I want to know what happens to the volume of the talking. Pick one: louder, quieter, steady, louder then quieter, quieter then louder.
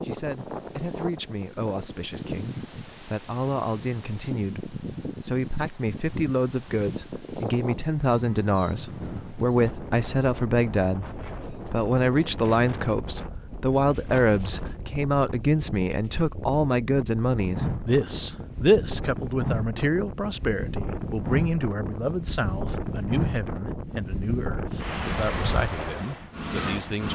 louder then quieter.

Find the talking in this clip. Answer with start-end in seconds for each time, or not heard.
0.0-27.1.